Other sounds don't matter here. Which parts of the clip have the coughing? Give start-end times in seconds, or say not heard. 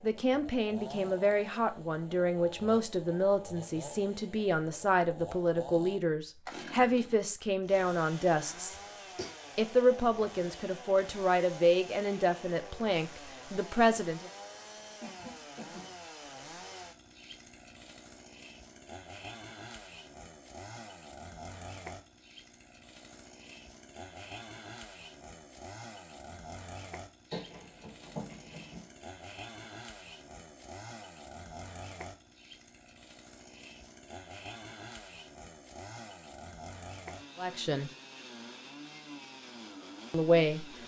8.3-9.3, 15.0-15.9, 27.3-28.9.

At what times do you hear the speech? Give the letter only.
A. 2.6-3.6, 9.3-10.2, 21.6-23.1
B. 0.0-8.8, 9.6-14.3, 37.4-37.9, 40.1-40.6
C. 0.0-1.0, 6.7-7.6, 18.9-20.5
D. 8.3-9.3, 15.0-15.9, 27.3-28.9
B.